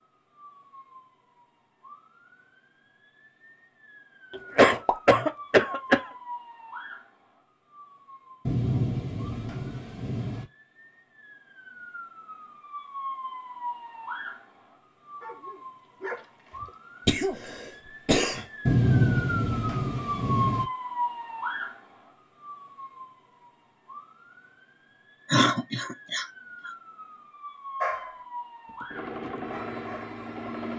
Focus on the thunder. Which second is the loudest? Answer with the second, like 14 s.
19 s.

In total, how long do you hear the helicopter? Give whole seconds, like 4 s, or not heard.
2 s.